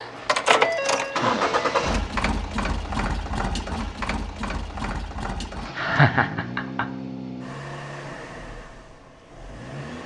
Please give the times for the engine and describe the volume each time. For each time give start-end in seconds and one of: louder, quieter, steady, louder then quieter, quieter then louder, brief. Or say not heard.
0.0-10.0 quieter.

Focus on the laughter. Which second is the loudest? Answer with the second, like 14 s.
6 s.